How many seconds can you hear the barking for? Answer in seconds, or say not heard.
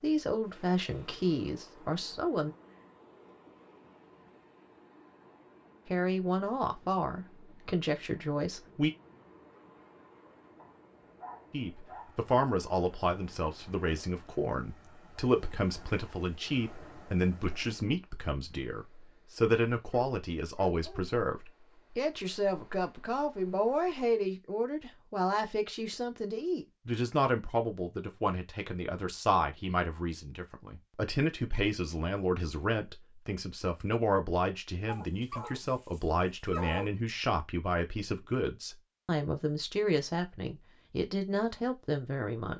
5 s.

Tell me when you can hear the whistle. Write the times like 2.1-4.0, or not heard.
not heard.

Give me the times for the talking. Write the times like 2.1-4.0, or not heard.
0.0-2.5, 5.8-8.9, 11.5-42.5.